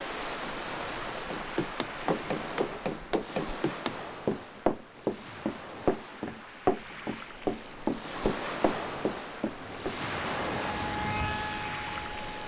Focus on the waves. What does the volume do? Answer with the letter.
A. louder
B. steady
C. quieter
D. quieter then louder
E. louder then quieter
D.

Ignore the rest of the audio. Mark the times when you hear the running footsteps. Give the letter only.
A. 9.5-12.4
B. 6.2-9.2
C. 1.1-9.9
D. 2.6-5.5
C.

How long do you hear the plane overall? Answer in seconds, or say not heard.
3 s.